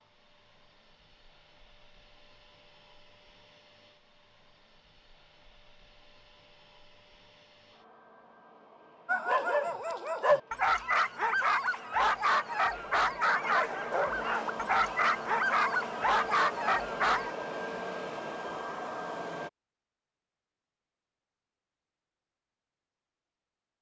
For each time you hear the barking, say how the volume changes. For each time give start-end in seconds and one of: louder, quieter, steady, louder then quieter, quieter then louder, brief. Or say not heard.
9.1-17.4 steady.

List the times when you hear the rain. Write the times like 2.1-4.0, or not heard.
not heard.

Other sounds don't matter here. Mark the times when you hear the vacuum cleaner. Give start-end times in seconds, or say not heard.
0.0-19.5.